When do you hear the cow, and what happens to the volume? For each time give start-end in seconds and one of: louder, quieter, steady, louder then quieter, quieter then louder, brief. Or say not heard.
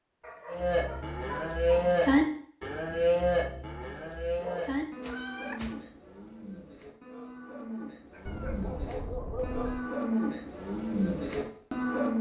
0.5-12.1 quieter then louder.